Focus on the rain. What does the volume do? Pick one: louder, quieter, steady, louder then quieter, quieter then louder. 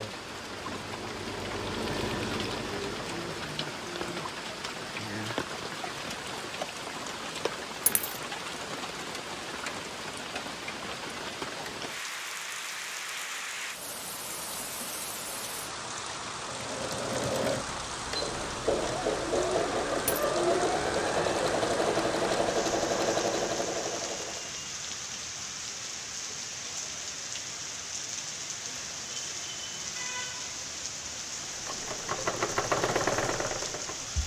steady.